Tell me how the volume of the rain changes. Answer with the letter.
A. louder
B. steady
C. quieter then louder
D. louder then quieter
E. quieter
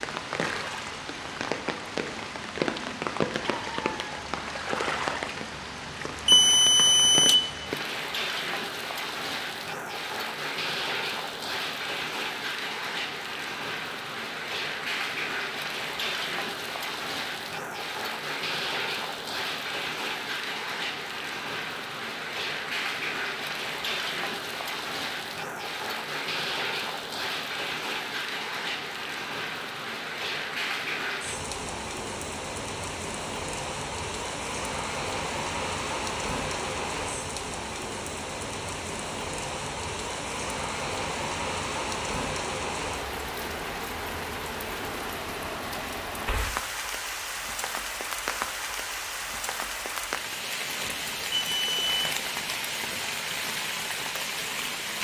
B.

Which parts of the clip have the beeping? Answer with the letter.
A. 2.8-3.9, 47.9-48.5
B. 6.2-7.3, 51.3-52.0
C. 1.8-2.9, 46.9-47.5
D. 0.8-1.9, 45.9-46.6
B.